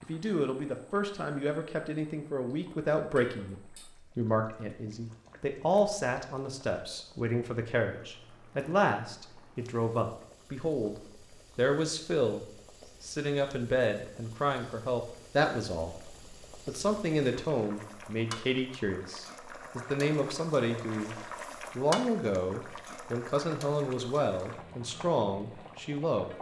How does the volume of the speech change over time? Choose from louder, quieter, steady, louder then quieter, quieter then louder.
steady.